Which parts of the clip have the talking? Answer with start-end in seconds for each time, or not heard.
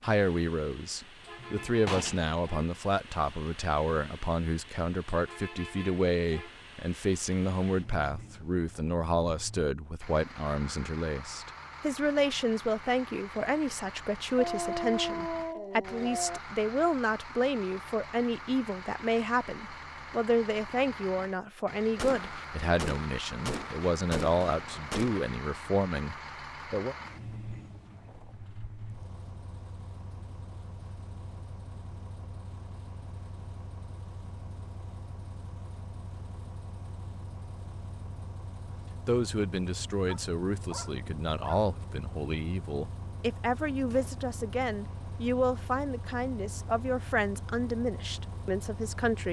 0.0-26.9, 39.0-49.2.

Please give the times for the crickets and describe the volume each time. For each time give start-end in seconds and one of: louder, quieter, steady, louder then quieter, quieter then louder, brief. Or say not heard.
not heard.